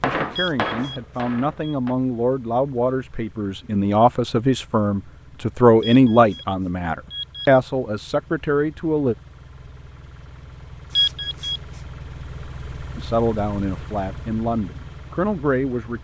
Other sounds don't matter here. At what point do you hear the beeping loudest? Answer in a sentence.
The loudest moment of the beeping is at 11 seconds.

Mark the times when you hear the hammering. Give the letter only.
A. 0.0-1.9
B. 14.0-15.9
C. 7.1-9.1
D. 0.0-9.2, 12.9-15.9
A.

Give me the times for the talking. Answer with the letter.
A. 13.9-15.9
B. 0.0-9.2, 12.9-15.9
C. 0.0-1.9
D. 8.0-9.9
B.